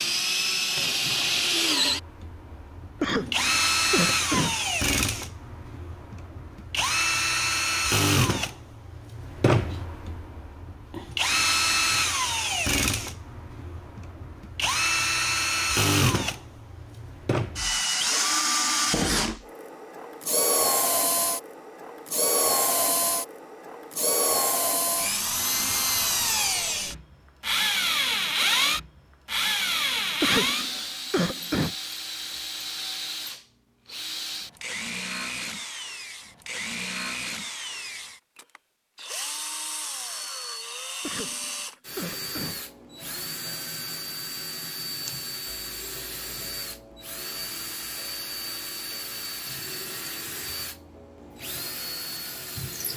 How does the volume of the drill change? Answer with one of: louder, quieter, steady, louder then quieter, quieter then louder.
quieter.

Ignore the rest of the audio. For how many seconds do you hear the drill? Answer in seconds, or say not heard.
53 s.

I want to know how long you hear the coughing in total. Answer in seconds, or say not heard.
5 s.